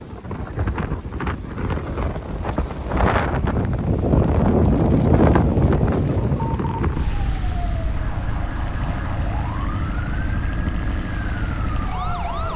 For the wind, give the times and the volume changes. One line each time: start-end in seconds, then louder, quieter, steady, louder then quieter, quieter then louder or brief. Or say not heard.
0.0-12.5 louder then quieter.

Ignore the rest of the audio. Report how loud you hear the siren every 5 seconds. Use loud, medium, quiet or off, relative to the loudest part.
off, loud, loud.